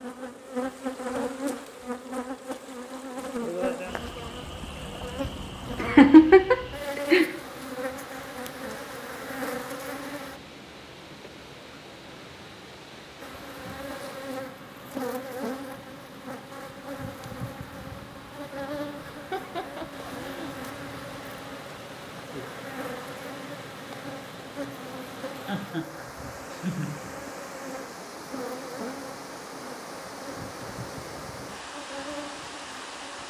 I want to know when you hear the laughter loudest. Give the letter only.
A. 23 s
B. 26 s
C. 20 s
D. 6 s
D.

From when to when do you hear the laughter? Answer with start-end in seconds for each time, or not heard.
5.8-7.3, 19.2-20.5, 25.4-27.0.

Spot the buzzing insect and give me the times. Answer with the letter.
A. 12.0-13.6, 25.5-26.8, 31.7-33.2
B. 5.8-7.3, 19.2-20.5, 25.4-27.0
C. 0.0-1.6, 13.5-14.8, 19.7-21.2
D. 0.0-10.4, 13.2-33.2
D.